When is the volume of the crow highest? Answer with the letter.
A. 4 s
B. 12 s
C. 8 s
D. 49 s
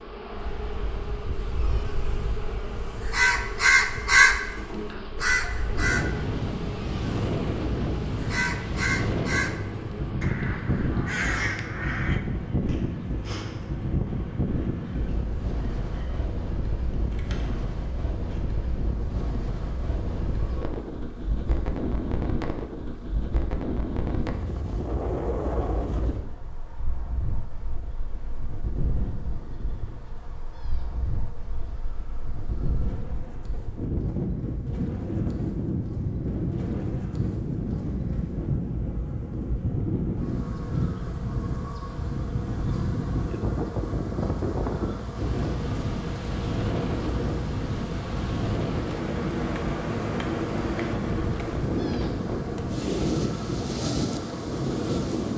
A.